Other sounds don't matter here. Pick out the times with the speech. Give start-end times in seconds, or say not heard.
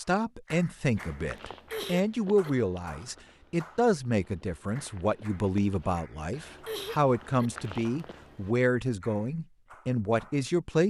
0.0-10.8.